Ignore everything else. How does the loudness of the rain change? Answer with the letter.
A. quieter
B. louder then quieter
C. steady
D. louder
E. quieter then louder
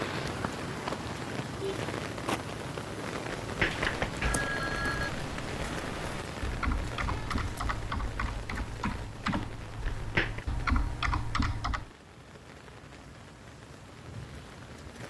A.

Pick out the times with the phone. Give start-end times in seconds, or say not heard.
3.4-5.1, 9.8-10.4.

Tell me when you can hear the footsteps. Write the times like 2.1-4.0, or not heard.
0.0-2.4.